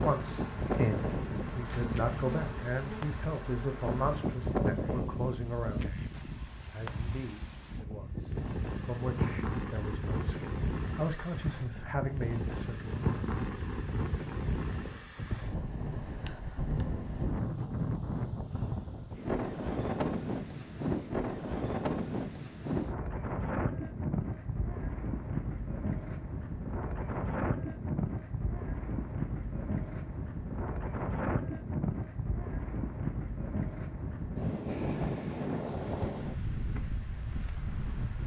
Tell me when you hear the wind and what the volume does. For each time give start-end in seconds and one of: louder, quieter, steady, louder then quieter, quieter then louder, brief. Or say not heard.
0.0-38.2 steady.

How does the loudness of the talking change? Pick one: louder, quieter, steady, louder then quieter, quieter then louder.
quieter then louder.